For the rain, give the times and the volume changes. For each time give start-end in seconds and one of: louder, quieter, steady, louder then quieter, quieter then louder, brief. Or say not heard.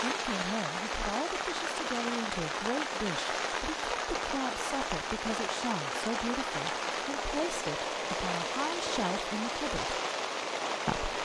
0.0-11.1 steady.